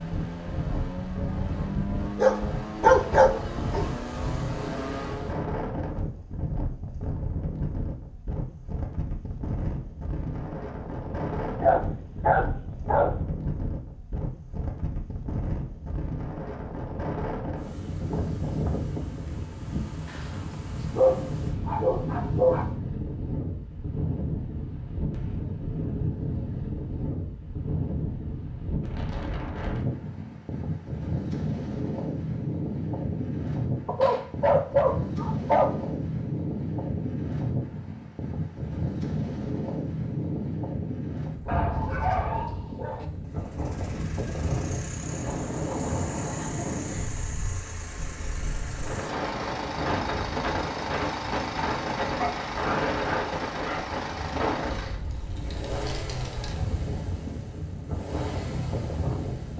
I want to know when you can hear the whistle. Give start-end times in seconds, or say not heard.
not heard.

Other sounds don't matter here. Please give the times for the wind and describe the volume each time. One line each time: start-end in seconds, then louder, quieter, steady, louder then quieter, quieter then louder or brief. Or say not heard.
0.0-59.5 steady.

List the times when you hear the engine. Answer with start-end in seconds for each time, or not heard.
0.0-5.5, 43.2-59.5.